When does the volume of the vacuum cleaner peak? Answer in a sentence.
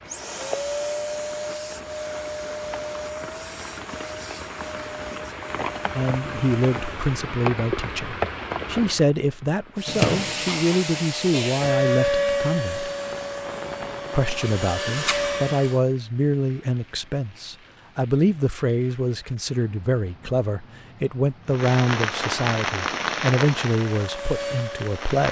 The loudest moment of the vacuum cleaner is at 12 seconds.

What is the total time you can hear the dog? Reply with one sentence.
The dog can't be heard in this clip.